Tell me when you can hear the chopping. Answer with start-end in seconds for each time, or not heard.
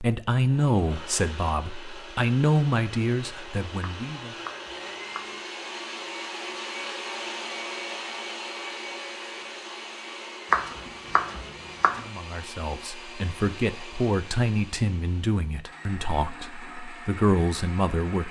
3.8-5.4, 10.5-12.1.